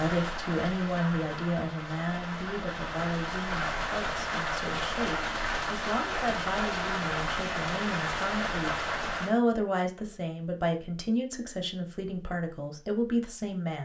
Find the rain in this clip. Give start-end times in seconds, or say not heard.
0.0-9.4.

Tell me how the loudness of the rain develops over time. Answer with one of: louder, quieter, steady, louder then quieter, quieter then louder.
louder.